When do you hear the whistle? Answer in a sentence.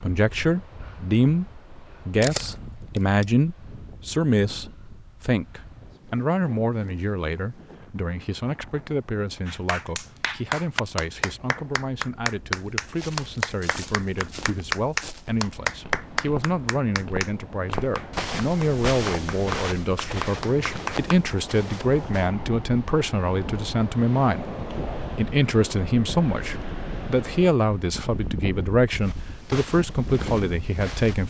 You can't hear the whistle here.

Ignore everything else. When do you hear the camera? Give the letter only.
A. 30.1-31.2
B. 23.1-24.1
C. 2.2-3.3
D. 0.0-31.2
C.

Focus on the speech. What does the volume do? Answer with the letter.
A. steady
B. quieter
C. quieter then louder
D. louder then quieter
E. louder
C.